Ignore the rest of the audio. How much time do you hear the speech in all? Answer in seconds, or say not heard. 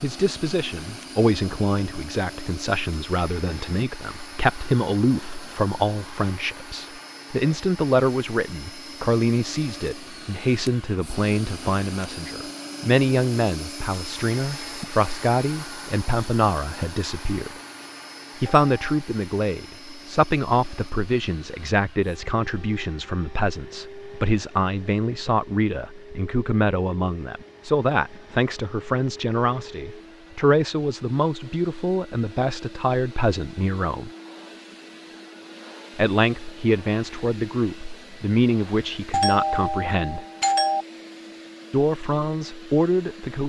39 s.